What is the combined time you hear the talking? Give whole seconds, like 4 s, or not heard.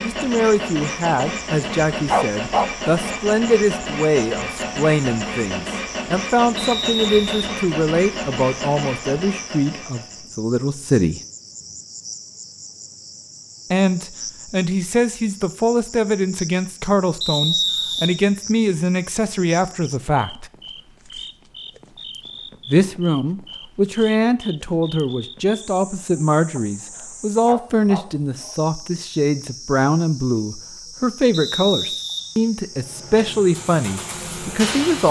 30 s.